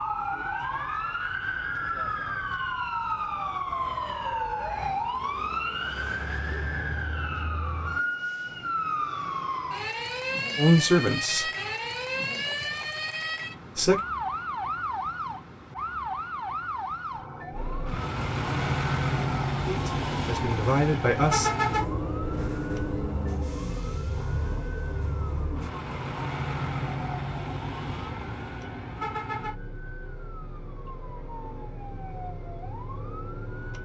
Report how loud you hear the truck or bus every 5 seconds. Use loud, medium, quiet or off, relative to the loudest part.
off, off, off, loud, loud, medium, quiet.